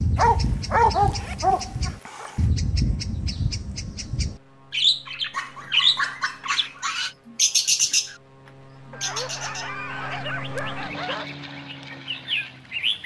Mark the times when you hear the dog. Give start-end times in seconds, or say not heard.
0.1-2.4, 5.3-7.2, 8.9-11.3.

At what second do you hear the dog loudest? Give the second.
1 s.